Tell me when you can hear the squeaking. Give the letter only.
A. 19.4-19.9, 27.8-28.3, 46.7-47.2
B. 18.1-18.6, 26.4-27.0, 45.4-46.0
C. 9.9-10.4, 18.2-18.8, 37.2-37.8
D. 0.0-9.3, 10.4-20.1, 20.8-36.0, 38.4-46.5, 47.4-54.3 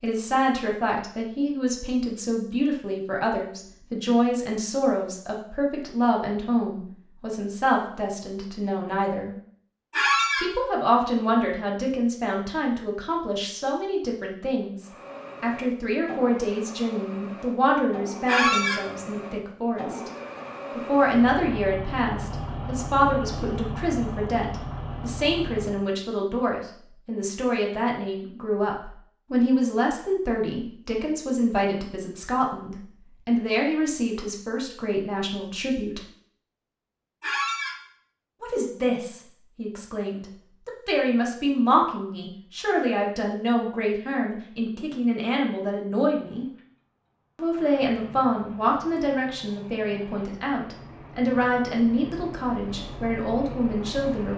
C.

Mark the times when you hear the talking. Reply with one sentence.
You can hear the talking from 0.0 to 9.3 s, from 10.4 to 20.1 s, from 20.8 to 36.0 s, from 38.4 to 46.5 s and from 47.4 to 54.3 s.